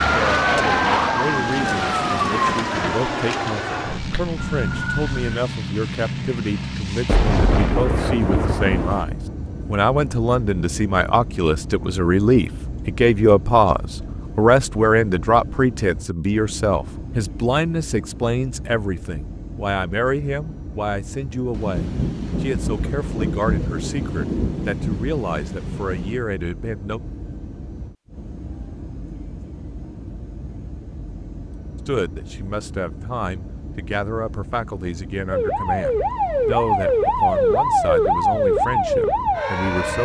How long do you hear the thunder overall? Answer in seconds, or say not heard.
7 s.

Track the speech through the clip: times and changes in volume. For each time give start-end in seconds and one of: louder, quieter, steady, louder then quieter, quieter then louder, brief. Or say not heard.
0.0-27.0 louder then quieter
31.9-40.0 steady.